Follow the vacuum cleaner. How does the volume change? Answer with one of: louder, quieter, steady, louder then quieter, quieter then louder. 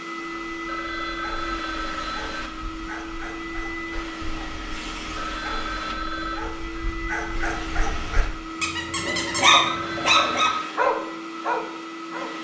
steady.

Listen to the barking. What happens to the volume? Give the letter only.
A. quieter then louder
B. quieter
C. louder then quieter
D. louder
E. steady
D.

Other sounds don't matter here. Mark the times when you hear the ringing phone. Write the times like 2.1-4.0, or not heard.
0.7-2.5, 5.2-6.5, 9.7-10.7.